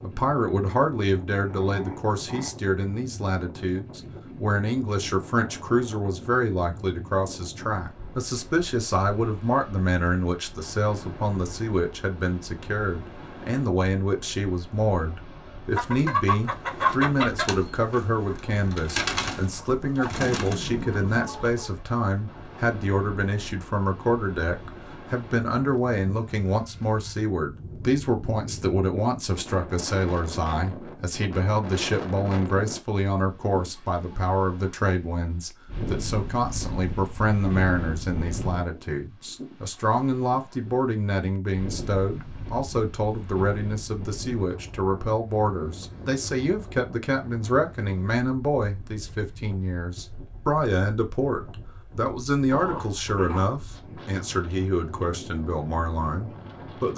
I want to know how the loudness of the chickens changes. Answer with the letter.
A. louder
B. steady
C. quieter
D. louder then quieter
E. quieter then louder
C.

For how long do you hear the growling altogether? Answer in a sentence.
You can hear the growling for 3 seconds altogether.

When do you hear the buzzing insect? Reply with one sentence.
You can't hear the buzzing insect here.